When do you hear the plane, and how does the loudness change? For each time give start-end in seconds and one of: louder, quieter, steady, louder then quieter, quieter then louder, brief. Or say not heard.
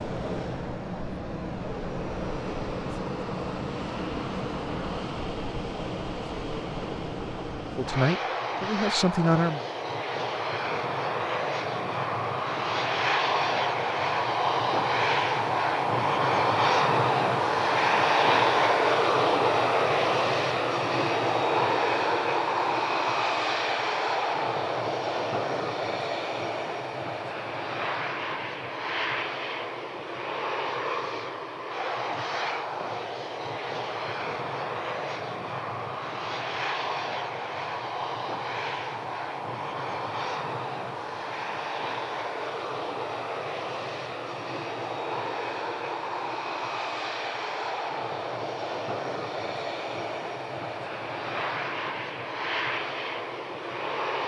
0.0-54.2 louder then quieter.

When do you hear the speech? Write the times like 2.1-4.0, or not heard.
7.8-9.7.